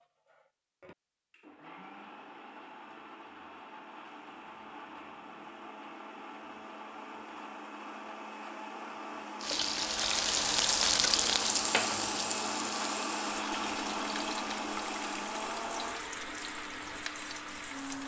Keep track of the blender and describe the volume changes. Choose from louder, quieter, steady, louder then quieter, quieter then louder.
louder.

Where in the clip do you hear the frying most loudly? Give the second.
11 s.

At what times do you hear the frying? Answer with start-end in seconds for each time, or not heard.
9.4-18.0.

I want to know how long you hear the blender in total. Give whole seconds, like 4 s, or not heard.
18 s.